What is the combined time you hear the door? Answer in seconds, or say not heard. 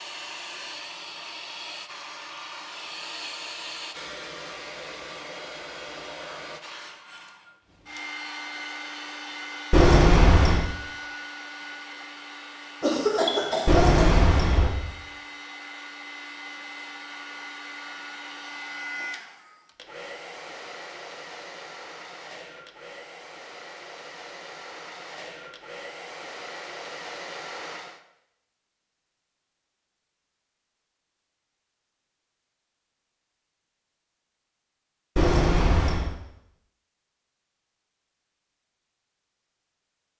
3 s.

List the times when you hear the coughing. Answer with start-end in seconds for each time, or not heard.
12.8-14.2.